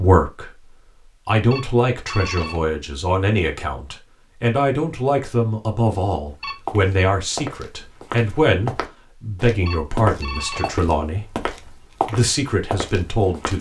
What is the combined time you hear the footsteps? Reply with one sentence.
You can hear the footsteps for 7 seconds altogether.